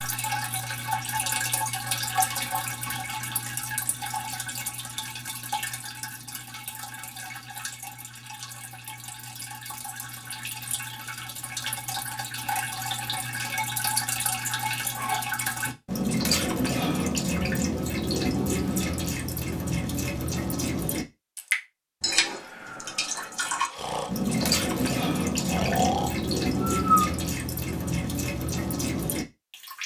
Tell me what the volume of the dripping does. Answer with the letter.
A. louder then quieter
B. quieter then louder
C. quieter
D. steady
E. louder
B.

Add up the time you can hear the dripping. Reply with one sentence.
You can hear the dripping for 30 seconds altogether.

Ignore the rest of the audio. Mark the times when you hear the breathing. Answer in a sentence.
The breathing can be heard from 22.4 to 26.9 s.